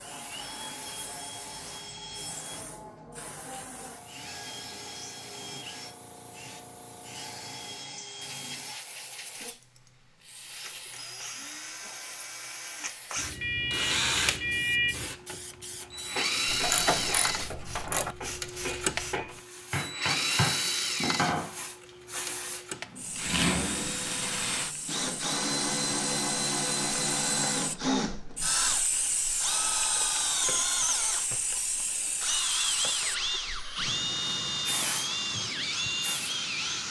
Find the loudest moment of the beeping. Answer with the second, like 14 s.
15 s.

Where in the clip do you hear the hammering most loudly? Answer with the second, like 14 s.
21 s.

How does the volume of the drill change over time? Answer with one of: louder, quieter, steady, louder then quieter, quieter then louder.
louder.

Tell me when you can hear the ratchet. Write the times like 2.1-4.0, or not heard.
16.4-18.1.